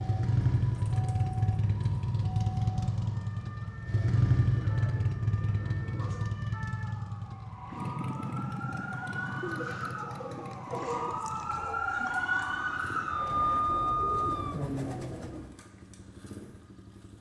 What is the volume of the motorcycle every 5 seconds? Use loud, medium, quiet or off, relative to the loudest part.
loud, medium, quiet, quiet.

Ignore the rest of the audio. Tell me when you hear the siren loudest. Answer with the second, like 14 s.
14 s.